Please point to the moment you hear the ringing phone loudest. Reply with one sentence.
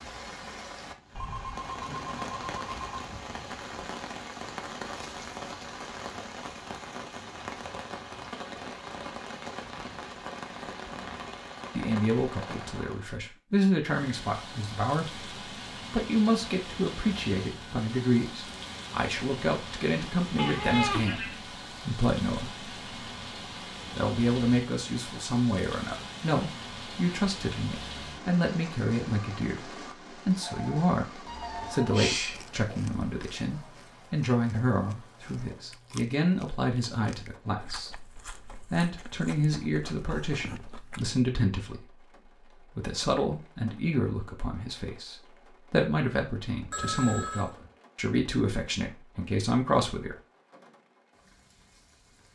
The volume of the ringing phone peaks at 47 seconds.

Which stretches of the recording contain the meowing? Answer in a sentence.
The meowing can be heard from 20.4 to 21.4 s and from 31.2 to 32.5 s.